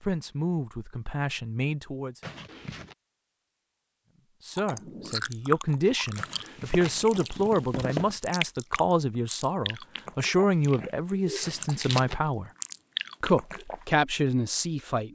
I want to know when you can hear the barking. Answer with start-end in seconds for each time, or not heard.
not heard.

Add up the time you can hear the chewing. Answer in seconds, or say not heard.
9 s.